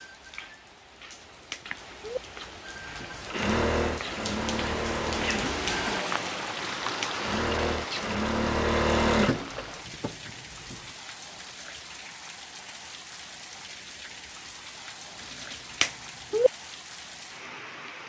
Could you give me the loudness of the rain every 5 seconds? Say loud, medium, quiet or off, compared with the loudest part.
medium, loud, medium, medium.